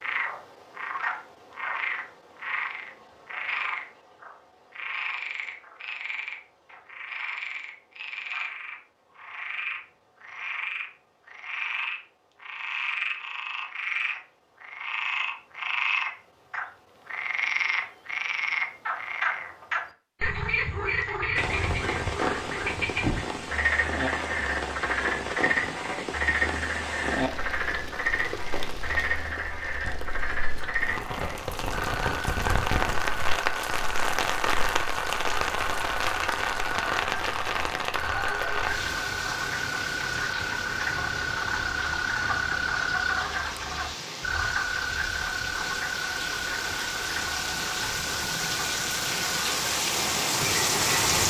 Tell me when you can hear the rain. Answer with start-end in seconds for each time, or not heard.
21.4-51.2.